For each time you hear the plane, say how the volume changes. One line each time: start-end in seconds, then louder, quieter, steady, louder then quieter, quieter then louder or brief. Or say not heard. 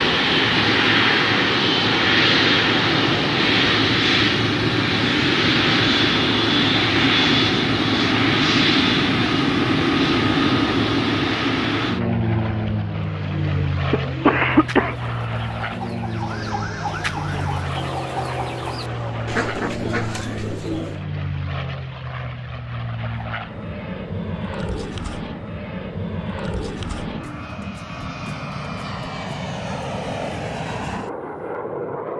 0.0-32.1 quieter.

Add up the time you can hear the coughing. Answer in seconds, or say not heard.
2 s.